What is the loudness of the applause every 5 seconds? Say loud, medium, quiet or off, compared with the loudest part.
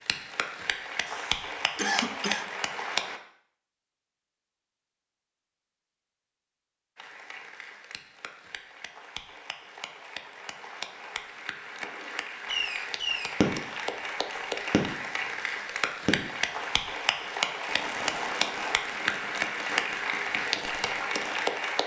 loud, quiet, medium, loud, loud.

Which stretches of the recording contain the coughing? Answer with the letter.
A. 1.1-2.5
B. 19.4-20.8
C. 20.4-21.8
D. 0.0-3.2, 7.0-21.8
A.